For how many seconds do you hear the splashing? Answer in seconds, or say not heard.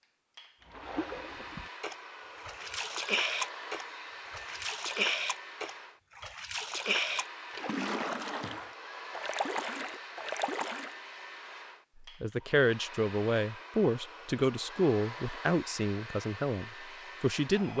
10 s.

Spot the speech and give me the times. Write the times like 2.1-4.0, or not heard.
12.0-17.7.